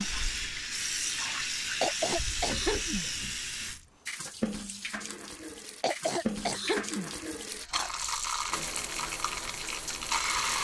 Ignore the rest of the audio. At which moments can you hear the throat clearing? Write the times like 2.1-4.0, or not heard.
1.8-3.0, 5.8-7.1.